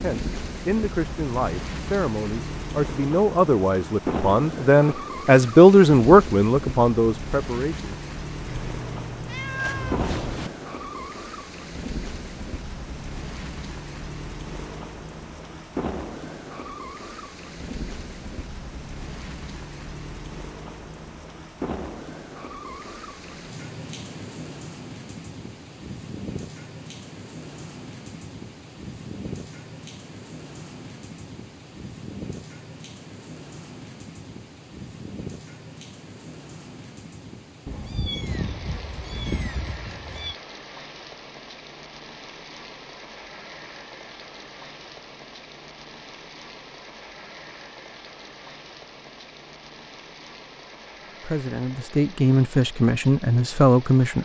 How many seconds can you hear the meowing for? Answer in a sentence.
You can hear the meowing for 5 seconds altogether.